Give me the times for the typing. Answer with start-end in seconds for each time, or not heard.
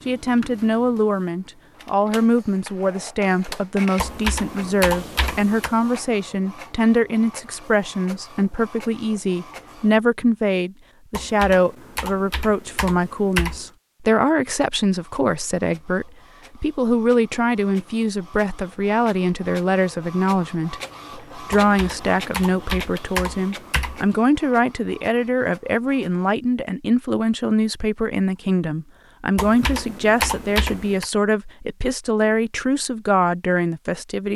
4.0-5.7, 11.1-13.7, 21.5-24.1, 29.4-31.1.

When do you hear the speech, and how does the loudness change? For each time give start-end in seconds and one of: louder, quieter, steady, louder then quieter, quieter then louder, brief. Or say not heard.
0.1-34.3 steady.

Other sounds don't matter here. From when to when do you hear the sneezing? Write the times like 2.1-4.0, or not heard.
not heard.